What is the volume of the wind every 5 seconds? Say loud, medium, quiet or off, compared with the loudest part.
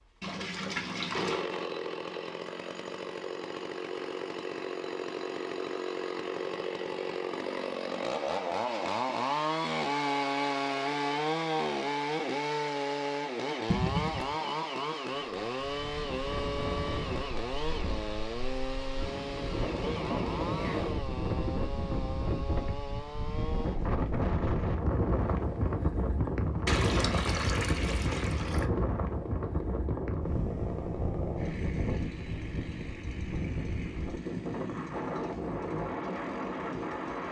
off, off, off, medium, loud, loud, loud, loud.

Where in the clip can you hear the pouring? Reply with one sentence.
You can hear the pouring from 0.2 to 1.4 s, from 13.7 to 14.3 s and from 26.6 to 28.7 s.